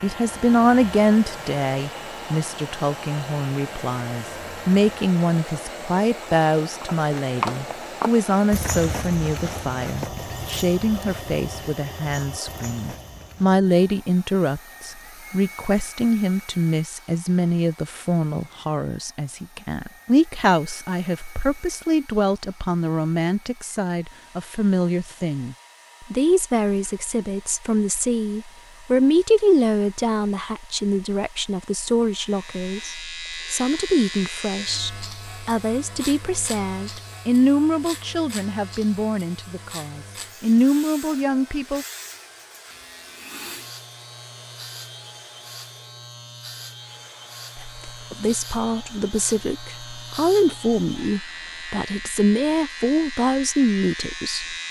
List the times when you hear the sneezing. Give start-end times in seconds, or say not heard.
not heard.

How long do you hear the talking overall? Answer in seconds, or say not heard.
49 s.